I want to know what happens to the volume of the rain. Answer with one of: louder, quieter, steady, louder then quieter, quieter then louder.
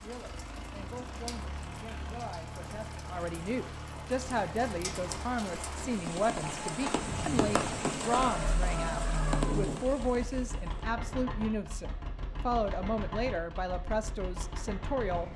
louder.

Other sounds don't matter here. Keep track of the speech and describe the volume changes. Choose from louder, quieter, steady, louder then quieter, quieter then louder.
louder.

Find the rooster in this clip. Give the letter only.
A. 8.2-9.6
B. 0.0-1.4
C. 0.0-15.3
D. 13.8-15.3
A.